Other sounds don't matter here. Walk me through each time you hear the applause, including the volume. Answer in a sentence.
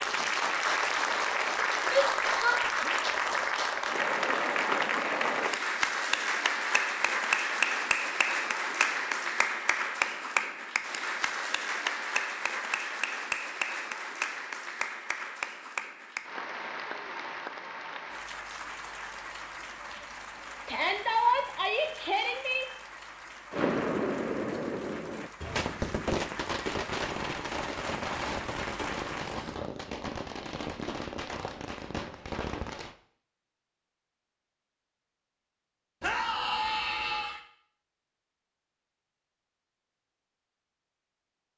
You can hear the applause from 0.0 to 29.6 s, getting quieter.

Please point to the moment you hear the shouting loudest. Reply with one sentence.
The volume of the shouting peaks at 21 seconds.